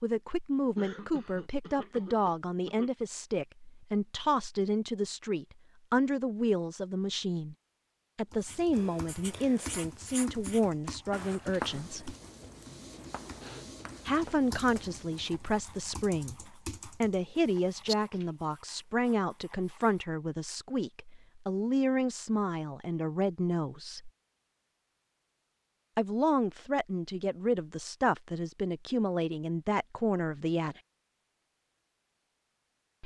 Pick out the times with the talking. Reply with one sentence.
You can hear the talking from 0.0 to 7.5 s, from 8.2 to 12.2 s, from 14.1 to 24.1 s and from 25.9 to 30.8 s.